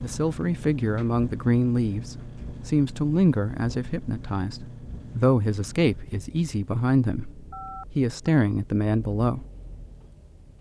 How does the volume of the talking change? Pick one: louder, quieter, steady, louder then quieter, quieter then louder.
steady.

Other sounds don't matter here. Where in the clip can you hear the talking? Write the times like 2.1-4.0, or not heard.
0.0-9.4.